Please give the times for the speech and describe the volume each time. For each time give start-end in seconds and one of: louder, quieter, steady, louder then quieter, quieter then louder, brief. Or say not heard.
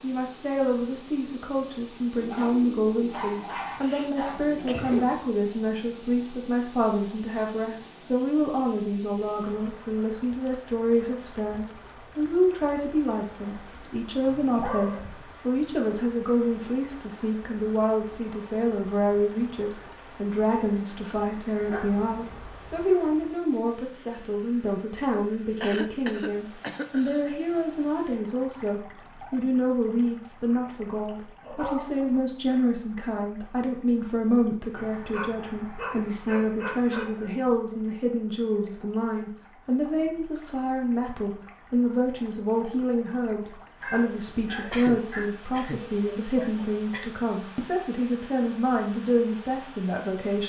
0.0-50.4 steady.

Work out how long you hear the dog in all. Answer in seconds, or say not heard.
11 s.